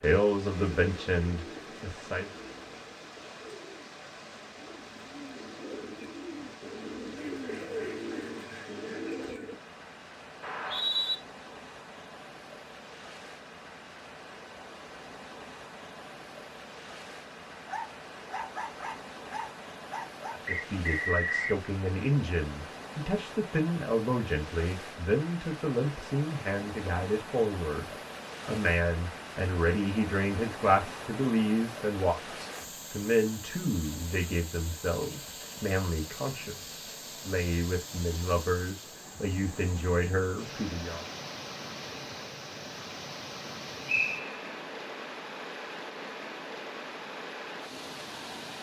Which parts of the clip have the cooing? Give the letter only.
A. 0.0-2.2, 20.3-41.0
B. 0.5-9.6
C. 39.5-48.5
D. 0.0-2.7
B.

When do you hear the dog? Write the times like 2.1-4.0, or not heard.
17.6-20.4.